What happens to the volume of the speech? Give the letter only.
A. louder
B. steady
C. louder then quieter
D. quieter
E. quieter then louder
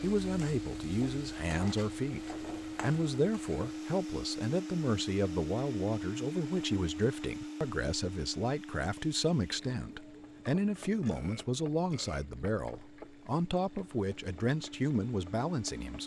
B.